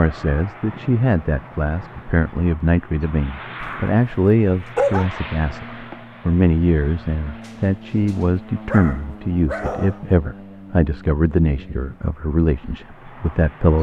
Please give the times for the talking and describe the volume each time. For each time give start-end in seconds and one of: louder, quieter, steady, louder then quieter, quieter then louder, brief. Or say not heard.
0.0-13.7 steady.